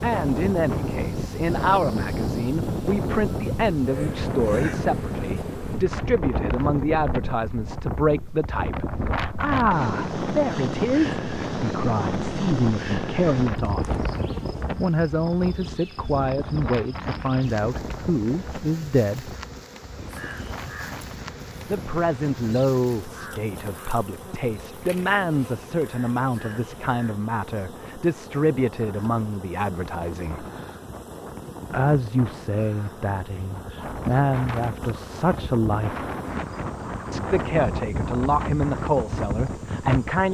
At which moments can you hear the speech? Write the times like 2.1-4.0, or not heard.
0.0-13.9, 14.8-19.4, 21.7-30.4, 31.7-36.0, 37.1-40.2.